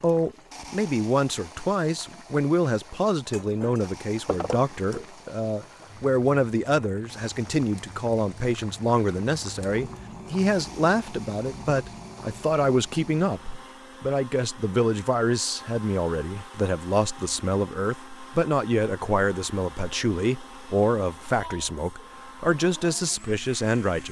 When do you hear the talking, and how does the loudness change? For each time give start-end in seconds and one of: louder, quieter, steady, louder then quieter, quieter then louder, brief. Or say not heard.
0.0-24.0 steady.